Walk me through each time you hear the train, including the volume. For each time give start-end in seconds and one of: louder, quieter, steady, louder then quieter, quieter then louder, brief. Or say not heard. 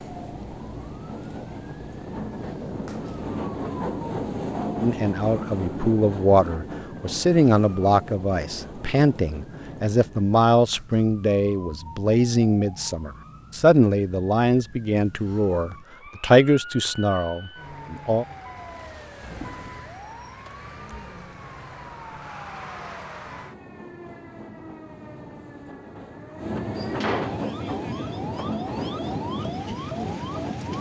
0.0-10.3 louder then quieter
23.1-30.7 louder.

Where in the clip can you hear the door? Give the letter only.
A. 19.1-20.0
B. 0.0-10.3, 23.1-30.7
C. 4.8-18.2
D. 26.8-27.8
D.